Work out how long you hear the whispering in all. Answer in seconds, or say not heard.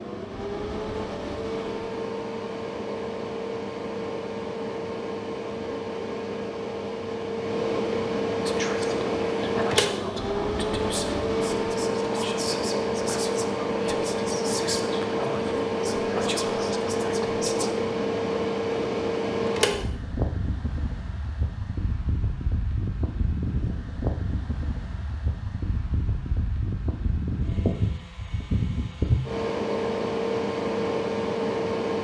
9 s.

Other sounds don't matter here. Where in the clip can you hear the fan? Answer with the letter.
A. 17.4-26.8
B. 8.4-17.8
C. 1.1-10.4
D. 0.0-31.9
D.